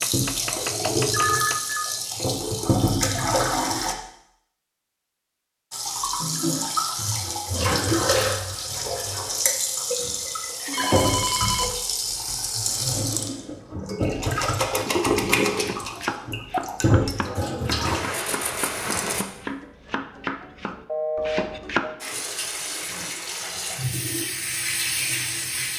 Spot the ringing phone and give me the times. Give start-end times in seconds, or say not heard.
1.1-1.9, 10.7-11.7, 20.9-21.9.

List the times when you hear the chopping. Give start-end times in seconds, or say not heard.
0.0-1.8, 15.5-21.9.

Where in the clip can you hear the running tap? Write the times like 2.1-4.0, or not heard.
0.0-4.0, 5.7-19.2, 22.0-25.7.